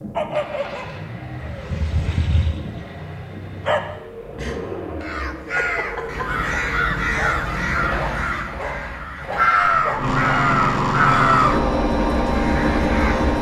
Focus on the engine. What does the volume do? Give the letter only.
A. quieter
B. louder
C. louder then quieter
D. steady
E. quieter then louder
B.